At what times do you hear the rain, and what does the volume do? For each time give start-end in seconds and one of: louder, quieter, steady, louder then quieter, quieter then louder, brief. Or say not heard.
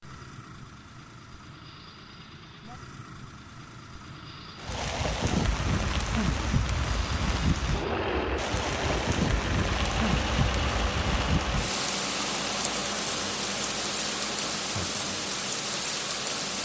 4.6-16.5 steady.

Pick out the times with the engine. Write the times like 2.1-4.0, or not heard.
0.0-16.5.